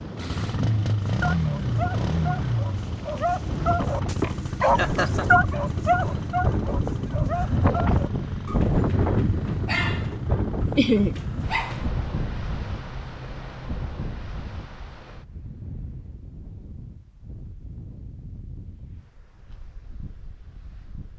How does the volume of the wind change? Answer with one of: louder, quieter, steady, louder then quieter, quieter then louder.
louder then quieter.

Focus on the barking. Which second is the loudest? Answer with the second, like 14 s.
5 s.